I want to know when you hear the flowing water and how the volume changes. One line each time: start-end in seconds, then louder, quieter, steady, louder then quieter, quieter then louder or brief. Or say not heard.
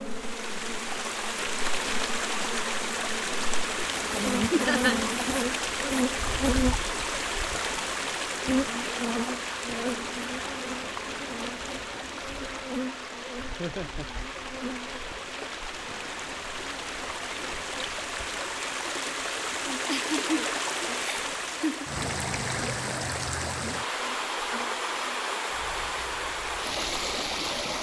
0.0-27.7 quieter then louder.